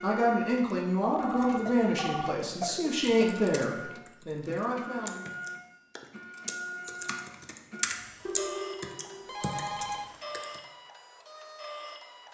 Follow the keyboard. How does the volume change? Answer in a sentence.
The volume of the keyboard goes up, then down.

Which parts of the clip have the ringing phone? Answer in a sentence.
The ringing phone can be heard from 1.2 to 2.4 s and from 8.2 to 10.1 s.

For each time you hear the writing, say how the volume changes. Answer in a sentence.
The writing can't be heard in this clip.